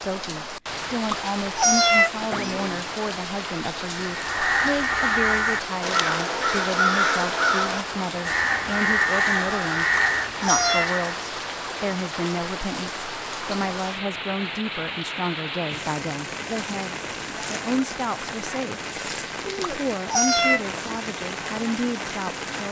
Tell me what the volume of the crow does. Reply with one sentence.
The loudness of the crow stays about the same.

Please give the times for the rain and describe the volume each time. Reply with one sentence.
You can hear the rain from 0.0 to 22.6 s, at a steady volume.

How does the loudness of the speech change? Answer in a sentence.
The loudness of the speech stays about the same.